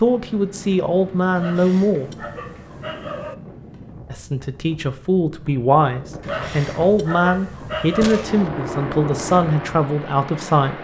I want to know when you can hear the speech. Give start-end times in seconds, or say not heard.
0.0-2.1, 4.1-10.7.